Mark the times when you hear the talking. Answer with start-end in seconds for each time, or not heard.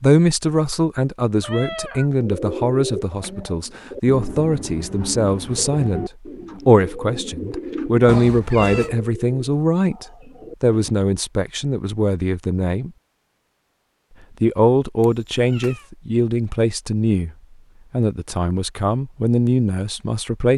0.0-12.9, 14.4-17.3, 17.9-20.5.